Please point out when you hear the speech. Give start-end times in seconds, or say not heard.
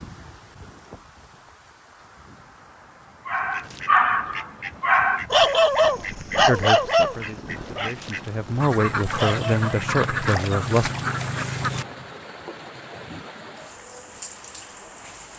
6.5-10.9.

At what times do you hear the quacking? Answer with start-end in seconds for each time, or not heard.
3.3-11.8.